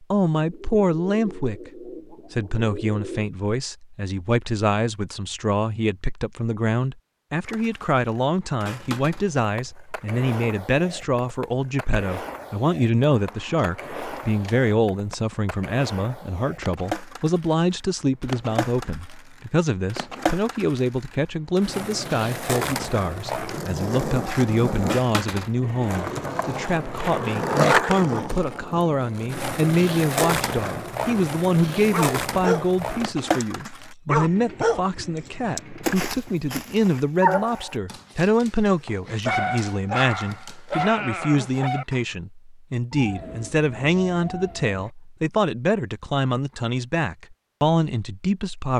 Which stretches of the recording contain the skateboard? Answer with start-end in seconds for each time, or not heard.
7.5-34.0.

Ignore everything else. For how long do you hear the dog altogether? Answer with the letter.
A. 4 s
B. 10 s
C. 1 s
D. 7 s
B.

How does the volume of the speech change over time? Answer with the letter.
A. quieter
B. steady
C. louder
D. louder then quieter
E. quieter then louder
B.